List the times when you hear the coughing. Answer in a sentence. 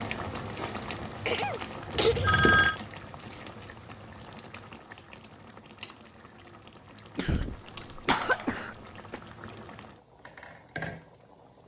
You can hear the coughing from 1.2 to 2.3 s and from 7.2 to 9.2 s.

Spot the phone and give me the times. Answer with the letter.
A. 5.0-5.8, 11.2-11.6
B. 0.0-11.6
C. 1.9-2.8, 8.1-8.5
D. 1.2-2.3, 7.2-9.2
C.